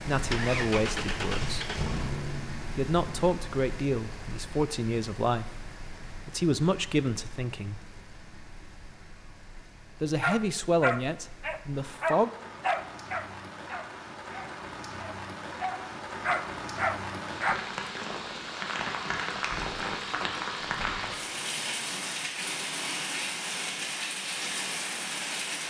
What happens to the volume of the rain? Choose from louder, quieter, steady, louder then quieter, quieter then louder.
quieter then louder.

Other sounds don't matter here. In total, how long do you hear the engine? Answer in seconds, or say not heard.
3 s.